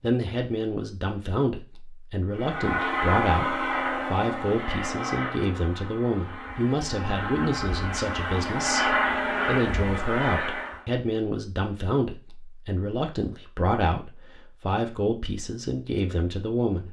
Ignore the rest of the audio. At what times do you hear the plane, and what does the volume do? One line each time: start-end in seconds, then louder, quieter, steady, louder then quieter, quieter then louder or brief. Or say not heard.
2.4-10.8 quieter then louder.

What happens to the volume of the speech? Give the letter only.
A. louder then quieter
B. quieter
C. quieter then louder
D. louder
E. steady
E.